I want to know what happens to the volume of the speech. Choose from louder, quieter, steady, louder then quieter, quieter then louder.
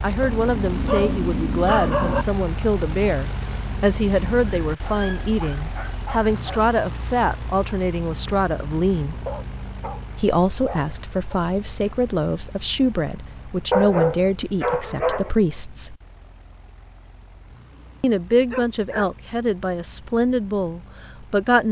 steady.